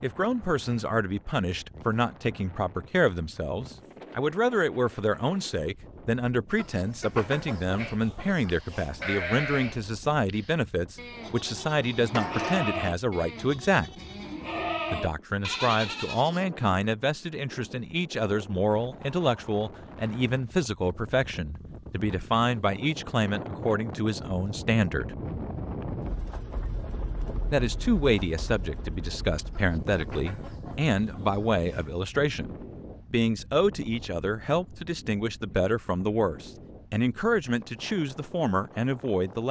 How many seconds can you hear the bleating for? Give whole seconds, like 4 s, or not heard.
9 s.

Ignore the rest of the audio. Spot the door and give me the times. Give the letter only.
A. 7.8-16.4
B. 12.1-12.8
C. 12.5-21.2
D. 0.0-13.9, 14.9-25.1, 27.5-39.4
B.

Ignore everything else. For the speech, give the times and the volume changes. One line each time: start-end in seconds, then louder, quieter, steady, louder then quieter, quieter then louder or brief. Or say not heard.
0.0-13.9 steady
14.9-25.1 steady
27.5-39.4 steady.